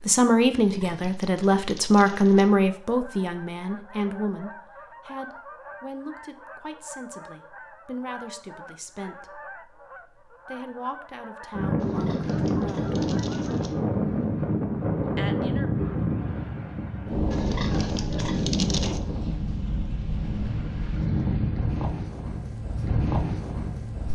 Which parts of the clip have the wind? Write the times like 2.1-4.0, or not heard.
11.6-24.1.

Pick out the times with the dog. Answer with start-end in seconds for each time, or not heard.
not heard.